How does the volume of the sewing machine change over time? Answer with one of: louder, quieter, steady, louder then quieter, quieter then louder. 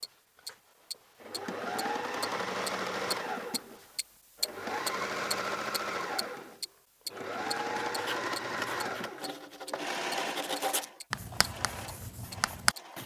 quieter.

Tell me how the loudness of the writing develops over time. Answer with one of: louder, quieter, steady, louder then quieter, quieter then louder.
louder then quieter.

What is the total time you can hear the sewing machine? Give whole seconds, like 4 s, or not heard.
13 s.